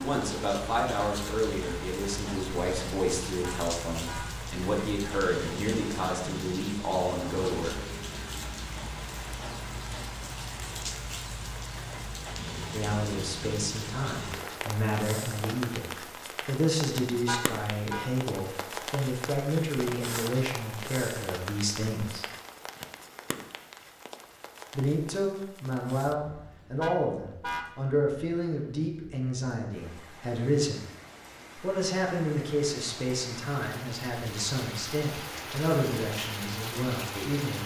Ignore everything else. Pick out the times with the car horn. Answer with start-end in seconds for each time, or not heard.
3.4-4.3, 17.2-18.1, 26.8-27.7.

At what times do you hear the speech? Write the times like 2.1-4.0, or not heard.
0.0-7.8, 12.7-22.2, 24.8-30.9, 31.6-37.6.